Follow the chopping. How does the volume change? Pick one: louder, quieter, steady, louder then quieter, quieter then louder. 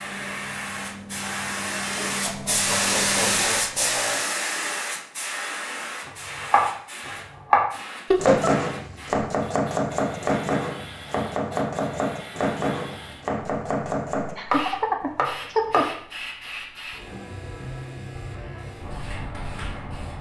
quieter.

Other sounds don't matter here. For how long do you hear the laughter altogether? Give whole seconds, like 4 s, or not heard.
4 s.